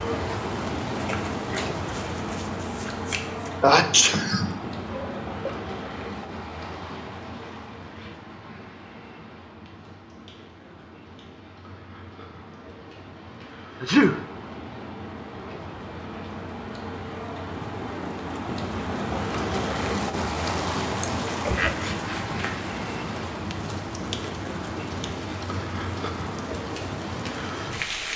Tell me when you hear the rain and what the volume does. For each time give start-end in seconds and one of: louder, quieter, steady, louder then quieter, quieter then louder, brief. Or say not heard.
0.0-28.1 quieter then louder.